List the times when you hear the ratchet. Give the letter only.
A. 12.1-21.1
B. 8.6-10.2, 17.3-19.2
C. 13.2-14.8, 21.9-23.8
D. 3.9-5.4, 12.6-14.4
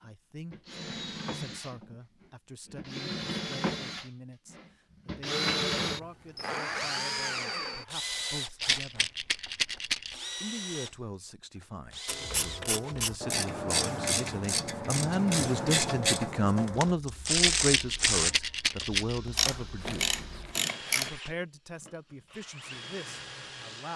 A.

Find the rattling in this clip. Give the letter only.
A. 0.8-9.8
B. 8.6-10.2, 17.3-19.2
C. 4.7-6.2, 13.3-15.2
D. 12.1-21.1
B.